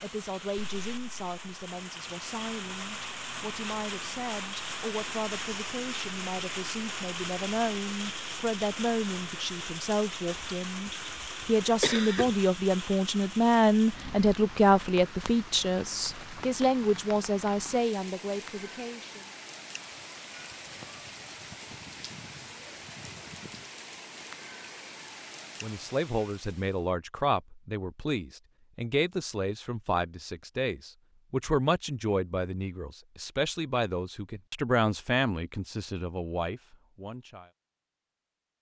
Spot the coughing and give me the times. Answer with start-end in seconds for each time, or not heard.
10.3-12.3.